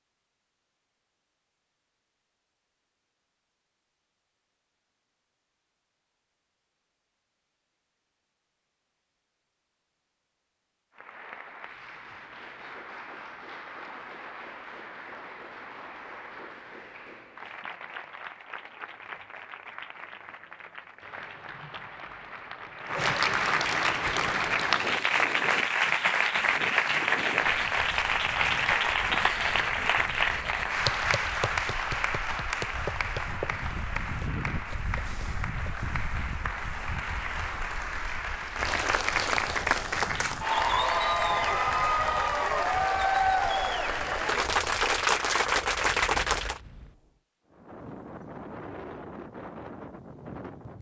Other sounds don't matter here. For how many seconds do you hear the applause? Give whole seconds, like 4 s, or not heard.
36 s.